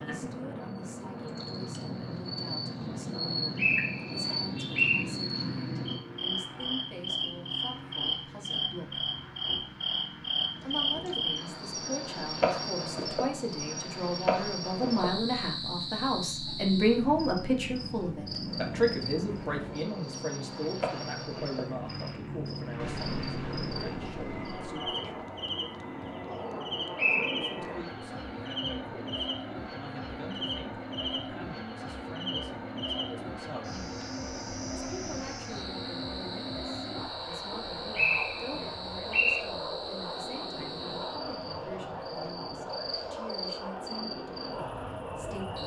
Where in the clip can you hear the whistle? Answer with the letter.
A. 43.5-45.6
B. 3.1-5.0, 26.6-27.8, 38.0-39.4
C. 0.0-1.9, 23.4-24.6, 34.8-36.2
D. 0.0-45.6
B.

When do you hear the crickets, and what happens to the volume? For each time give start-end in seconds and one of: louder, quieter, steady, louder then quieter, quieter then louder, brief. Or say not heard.
0.0-45.6 quieter.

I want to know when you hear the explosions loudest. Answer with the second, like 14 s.
23 s.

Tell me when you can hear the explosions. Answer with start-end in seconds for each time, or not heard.
22.8-24.8.